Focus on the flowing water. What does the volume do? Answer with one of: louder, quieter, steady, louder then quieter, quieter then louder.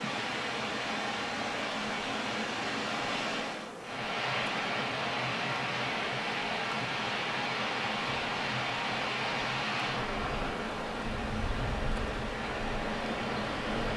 steady.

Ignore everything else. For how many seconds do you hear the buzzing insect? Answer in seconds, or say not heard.
14 s.